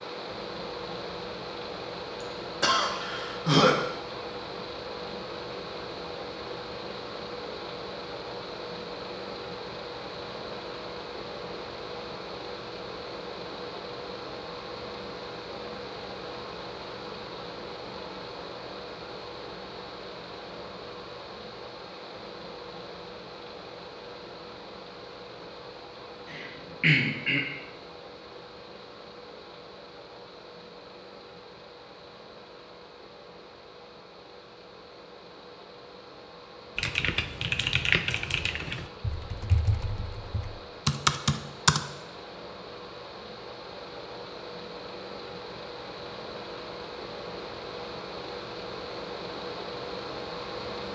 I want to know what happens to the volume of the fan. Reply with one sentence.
The volume of the fan goes down, then up.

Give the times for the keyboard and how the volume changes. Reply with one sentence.
The keyboard can be heard from 36.8 to 41.9 s, getting quieter then louder.